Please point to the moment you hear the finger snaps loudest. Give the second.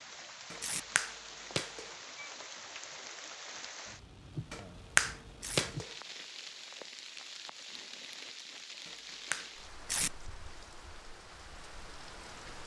5 s.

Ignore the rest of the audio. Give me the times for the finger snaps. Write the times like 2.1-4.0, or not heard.
0.5-1.9, 4.5-5.9, 8.8-9.5.